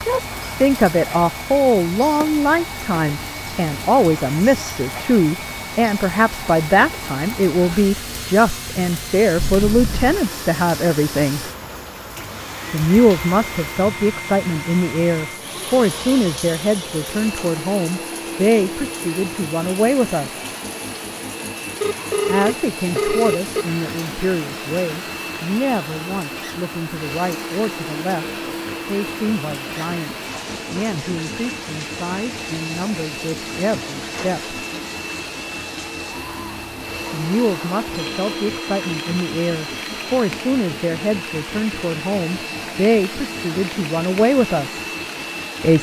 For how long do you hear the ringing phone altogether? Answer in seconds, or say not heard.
5 s.